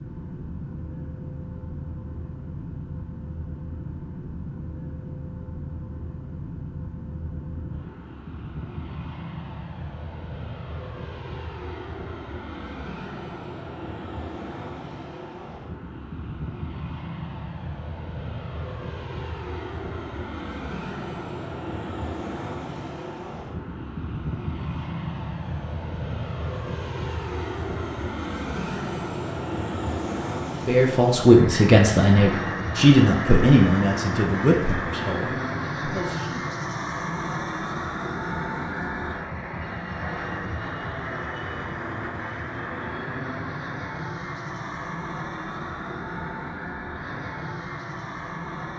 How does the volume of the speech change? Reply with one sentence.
The loudness of the speech goes down.